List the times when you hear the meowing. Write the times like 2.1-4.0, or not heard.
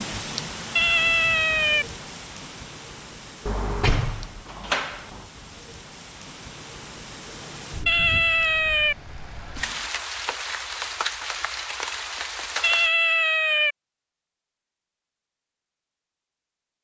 0.8-1.9, 7.8-8.9, 12.6-13.8.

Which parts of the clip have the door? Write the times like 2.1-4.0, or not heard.
3.5-5.2.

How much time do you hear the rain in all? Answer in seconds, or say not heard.
13 s.